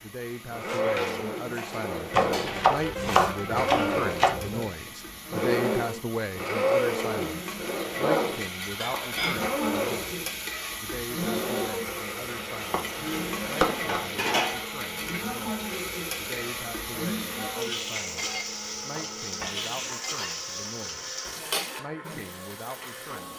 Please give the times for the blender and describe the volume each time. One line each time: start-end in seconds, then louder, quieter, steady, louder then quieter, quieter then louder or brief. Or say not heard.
0.0-23.3 quieter.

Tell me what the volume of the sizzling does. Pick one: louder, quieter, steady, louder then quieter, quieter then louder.
louder.